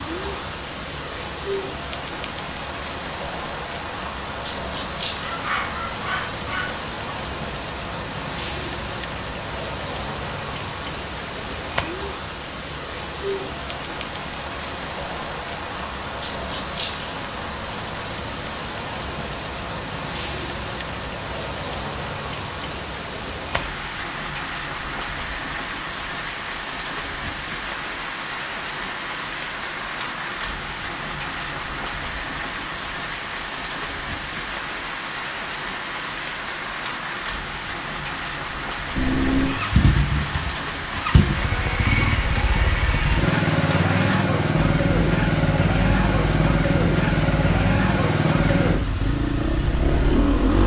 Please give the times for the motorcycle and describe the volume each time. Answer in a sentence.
You can hear the motorcycle from 39.0 to 50.6 s, at a steady volume.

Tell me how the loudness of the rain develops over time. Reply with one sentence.
The volume of the rain stays about the same.